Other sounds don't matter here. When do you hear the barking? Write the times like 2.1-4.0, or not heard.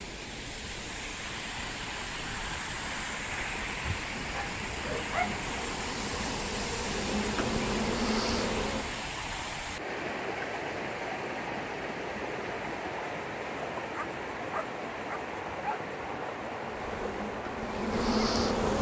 3.8-5.5, 13.9-15.8.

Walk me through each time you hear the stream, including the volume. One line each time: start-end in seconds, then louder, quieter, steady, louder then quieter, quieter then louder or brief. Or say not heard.
0.0-18.7 steady.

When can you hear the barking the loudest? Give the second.
5 s.